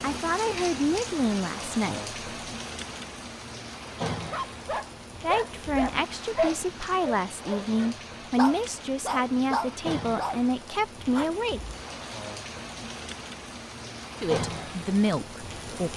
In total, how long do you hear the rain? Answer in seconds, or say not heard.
16 s.